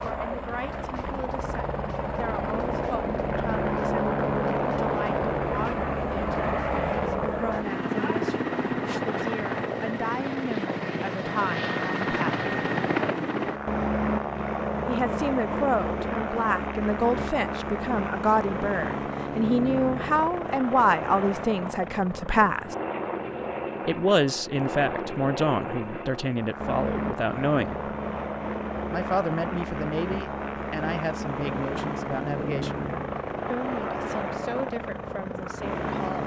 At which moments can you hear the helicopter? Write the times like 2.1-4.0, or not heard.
0.0-36.2.